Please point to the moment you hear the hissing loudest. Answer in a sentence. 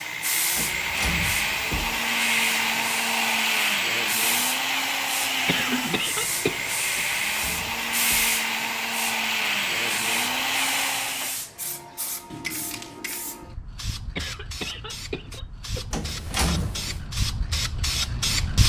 The volume of the hissing peaks at 18 seconds.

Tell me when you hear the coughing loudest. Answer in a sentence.
The loudest moment of the coughing is at 6 seconds.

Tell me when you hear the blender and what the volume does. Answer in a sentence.
You can hear the blender from 0.0 to 11.4 s, at a steady volume.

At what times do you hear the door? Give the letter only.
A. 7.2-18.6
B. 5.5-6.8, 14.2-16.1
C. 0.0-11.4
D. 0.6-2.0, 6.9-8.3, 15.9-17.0
D.